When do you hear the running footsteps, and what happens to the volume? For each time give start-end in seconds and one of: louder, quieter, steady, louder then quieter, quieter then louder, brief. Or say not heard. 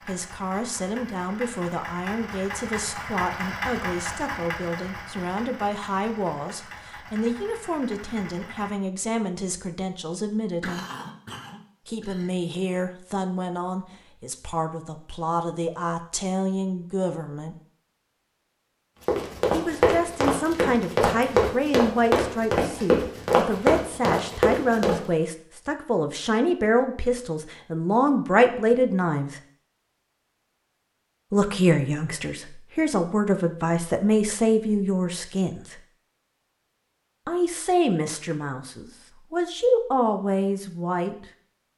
19.1-25.0 steady.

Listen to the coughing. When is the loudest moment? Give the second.
11 s.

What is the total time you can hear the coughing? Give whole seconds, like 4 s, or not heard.
2 s.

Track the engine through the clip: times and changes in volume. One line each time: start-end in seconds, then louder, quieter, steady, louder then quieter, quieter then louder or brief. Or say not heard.
0.0-8.8 louder then quieter.